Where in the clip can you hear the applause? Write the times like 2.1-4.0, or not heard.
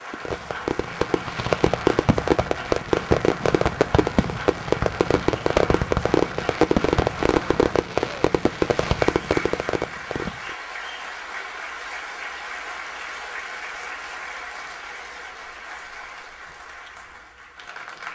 0.0-18.1.